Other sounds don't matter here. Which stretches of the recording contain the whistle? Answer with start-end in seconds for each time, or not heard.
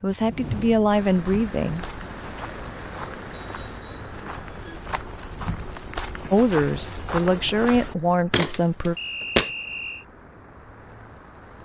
3.4-4.1, 8.9-10.1.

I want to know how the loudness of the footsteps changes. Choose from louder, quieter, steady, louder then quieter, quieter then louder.
louder.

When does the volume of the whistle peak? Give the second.
9 s.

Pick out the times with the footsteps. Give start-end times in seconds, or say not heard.
1.1-9.5.